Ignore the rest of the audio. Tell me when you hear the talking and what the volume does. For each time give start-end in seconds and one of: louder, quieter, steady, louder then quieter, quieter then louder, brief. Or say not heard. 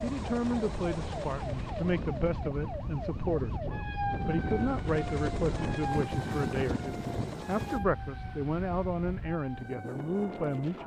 0.0-10.8 steady.